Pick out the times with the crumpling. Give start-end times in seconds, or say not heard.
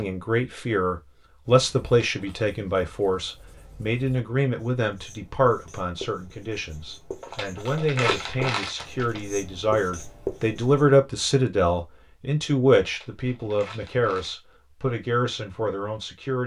2.0-2.5, 7.2-9.2, 12.8-14.4.